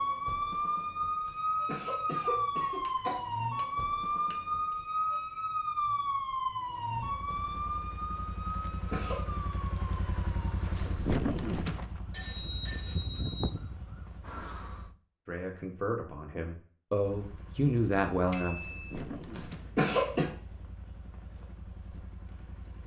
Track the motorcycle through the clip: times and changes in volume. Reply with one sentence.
The motorcycle can be heard from 6.9 to 14.9 s, getting louder then quieter; and from 17.0 to 22.8 s, getting louder then quieter.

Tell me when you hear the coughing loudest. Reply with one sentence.
The loudest moment of the coughing is at 20 seconds.